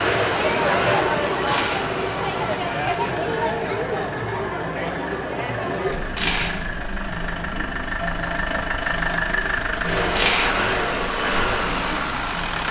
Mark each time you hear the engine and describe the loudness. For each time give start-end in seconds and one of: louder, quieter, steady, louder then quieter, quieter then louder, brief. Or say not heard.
0.0-12.6 quieter then louder.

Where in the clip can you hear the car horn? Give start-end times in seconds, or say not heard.
not heard.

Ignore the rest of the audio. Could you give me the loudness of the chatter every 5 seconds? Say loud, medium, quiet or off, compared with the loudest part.
loud, medium, quiet.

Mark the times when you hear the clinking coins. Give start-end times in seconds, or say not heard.
1.2-1.9, 5.8-6.5, 9.8-10.5.